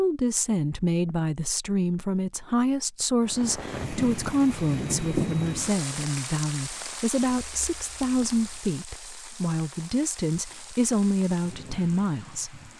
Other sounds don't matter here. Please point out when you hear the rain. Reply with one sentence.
You can hear the rain from 3.2 to 12.7 s.